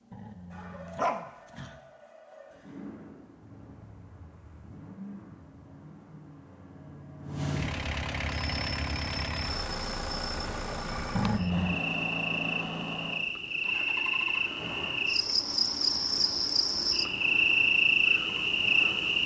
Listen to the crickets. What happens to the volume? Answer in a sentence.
The volume of the crickets goes up.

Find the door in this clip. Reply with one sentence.
You can't hear the door here.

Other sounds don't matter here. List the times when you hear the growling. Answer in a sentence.
You can hear the growling from 0.1 to 1.8 s and from 11.1 to 11.8 s.